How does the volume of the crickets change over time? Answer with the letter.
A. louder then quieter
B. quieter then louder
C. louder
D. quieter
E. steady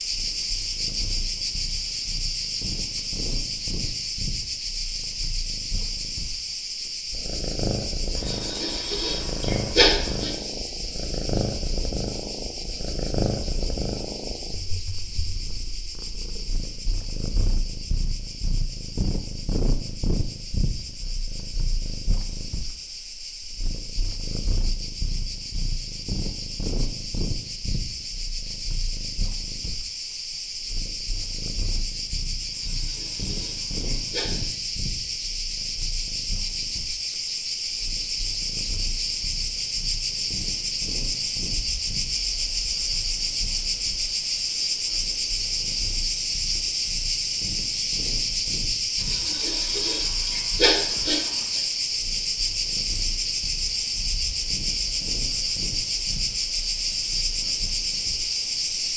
B.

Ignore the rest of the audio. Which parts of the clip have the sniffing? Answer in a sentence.
You can hear the sniffing from 8.2 to 10.3 s, from 32.5 to 34.3 s and from 49.0 to 51.6 s.